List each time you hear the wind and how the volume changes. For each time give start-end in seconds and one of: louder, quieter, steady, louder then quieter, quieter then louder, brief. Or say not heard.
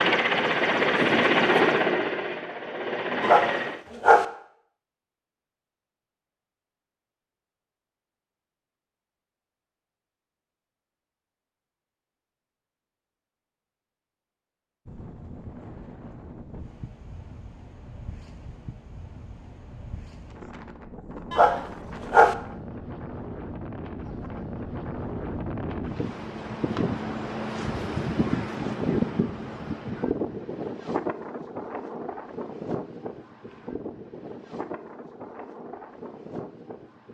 14.8-37.0 louder then quieter.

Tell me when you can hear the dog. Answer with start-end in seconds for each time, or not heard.
3.2-4.2, 21.3-22.4.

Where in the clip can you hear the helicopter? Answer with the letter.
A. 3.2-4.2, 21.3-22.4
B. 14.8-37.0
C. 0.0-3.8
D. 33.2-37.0
C.